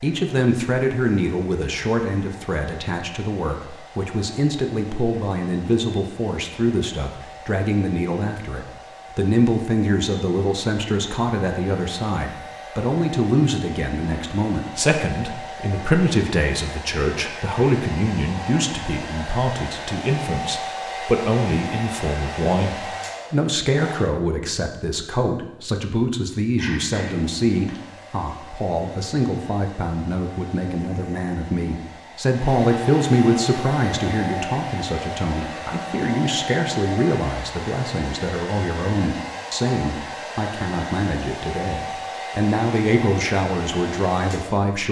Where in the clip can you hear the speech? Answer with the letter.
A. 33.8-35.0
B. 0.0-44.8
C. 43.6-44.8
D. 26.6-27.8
B.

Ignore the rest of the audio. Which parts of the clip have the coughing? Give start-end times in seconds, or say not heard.
26.6-27.8.